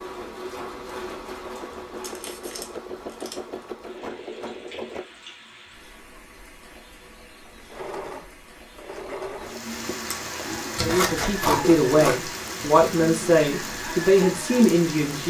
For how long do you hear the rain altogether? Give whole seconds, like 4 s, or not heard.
15 s.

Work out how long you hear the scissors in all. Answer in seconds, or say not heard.
3 s.